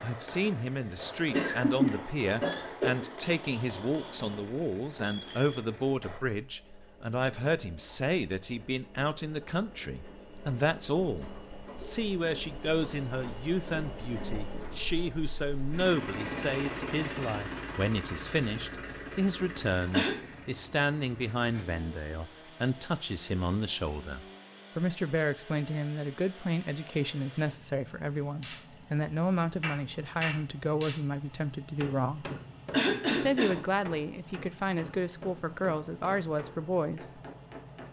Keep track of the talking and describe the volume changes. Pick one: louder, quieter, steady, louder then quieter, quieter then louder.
steady.